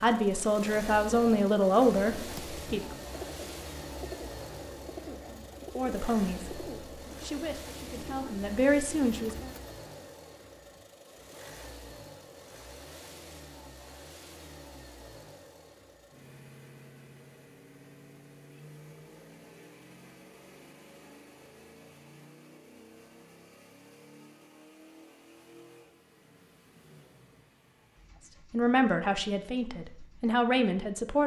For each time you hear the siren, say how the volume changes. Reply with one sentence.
The siren can't be heard in this clip.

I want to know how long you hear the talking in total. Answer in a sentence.
The talking can be heard for 9 seconds in total.